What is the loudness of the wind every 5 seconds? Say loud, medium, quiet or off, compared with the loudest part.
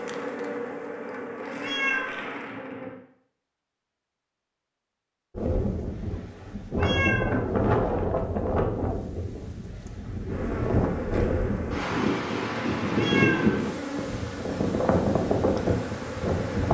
off, loud, loud, loud.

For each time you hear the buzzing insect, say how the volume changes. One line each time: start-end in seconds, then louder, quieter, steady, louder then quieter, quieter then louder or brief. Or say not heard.
0.0-3.0 brief
10.3-16.6 steady.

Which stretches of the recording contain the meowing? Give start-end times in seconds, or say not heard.
1.6-2.2, 6.8-7.4, 12.9-13.6.